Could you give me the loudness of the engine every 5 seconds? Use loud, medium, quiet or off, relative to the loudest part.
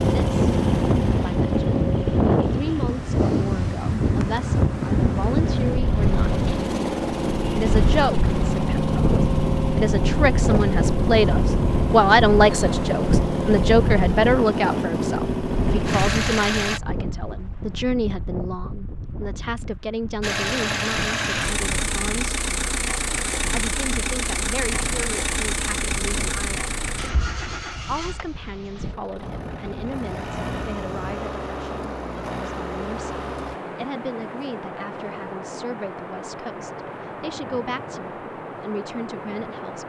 loud, loud, loud, loud, loud, medium, medium, off.